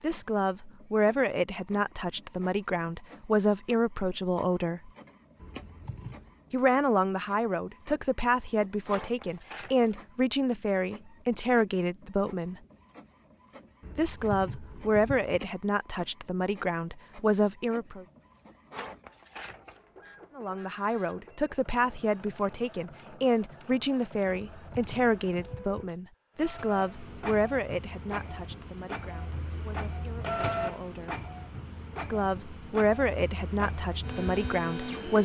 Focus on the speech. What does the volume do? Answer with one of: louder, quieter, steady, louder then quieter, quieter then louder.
steady.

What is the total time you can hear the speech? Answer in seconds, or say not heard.
29 s.